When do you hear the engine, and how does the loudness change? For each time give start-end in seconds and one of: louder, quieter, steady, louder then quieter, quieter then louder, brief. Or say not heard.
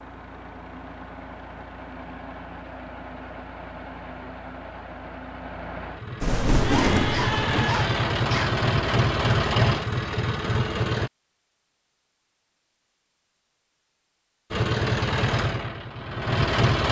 0.0-11.1 louder
14.5-16.8 brief.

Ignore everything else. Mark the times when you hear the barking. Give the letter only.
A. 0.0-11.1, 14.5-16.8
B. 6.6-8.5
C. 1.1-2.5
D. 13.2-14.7
B.